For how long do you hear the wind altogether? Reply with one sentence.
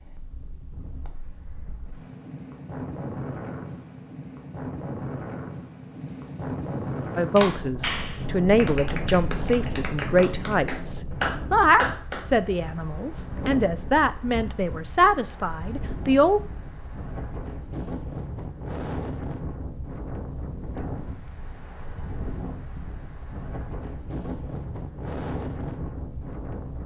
The wind can be heard for 27 seconds in total.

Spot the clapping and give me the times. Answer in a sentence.
The clapping can be heard from 7.3 to 12.2 s.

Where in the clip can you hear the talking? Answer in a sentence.
You can hear the talking from 7.2 to 16.4 s.